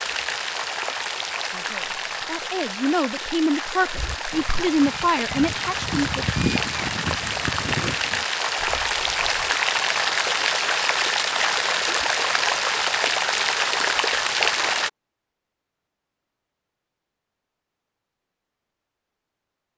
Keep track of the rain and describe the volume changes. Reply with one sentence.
The loudness of the rain goes up.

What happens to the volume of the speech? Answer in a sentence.
The volume of the speech goes up.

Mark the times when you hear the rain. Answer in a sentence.
The rain can be heard from 0.0 to 14.9 s.